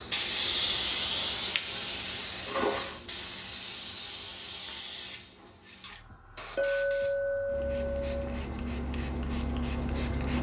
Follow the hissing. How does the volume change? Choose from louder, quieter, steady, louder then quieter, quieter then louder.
quieter then louder.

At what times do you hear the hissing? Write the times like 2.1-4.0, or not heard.
0.0-10.3.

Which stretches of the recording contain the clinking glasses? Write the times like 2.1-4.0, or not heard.
2.5-3.0, 6.5-8.4.